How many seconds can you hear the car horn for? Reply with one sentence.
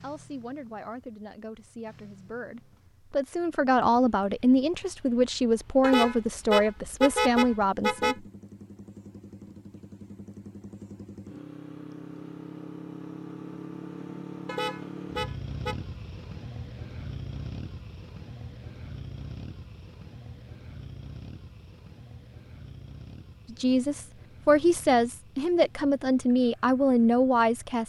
You can hear the car horn for 4 seconds altogether.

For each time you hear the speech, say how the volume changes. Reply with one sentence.
The speech can be heard from 0.0 to 8.2 s, getting louder; and from 23.5 to 27.8 s, at a steady volume.